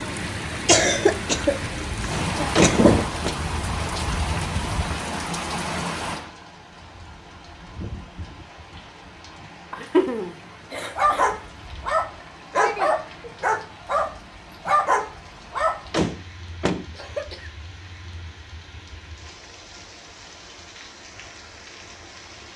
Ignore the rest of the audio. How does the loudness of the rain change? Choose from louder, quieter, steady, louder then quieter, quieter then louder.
quieter.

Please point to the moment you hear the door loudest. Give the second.
3 s.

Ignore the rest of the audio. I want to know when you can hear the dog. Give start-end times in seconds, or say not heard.
10.9-15.8.